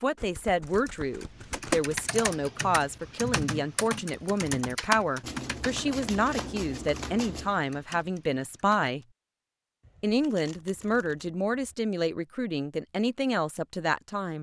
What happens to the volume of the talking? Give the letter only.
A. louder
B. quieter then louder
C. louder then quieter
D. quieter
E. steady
E.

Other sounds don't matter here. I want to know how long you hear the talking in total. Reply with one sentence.
You can hear the talking for 13 seconds altogether.